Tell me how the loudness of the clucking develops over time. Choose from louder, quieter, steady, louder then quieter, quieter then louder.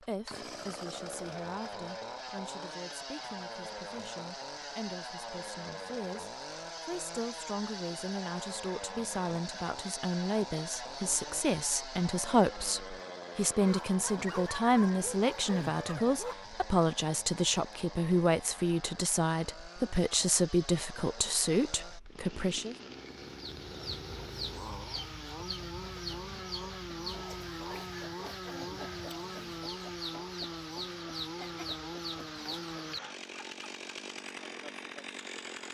steady.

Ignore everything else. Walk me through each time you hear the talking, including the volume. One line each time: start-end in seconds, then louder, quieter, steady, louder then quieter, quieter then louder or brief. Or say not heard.
0.0-22.8 louder.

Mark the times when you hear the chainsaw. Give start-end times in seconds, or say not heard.
0.0-35.6.